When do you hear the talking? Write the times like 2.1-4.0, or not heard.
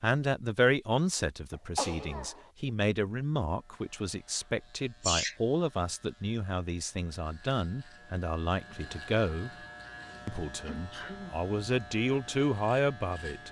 0.0-9.5, 10.2-13.4.